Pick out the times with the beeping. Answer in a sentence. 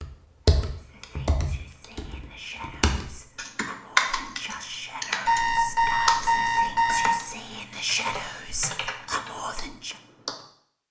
You can hear the beeping from 5.2 to 7.1 s.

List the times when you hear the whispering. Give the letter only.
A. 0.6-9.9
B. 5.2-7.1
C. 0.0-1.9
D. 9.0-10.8
A.